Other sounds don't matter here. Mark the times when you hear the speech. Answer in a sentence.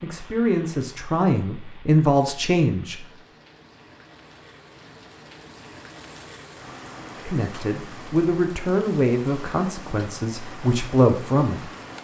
The speech can be heard from 0.0 to 3.0 s and from 7.1 to 11.7 s.